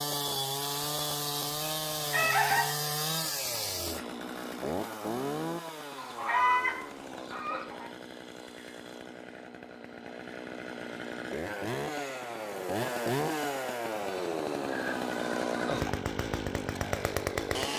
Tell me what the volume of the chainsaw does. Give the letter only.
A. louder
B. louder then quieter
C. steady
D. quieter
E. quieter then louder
E.